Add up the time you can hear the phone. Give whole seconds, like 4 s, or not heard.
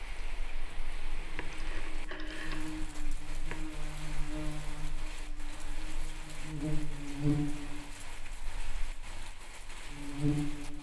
2 s.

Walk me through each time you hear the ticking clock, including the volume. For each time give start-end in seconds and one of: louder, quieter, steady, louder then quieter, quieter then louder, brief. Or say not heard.
not heard.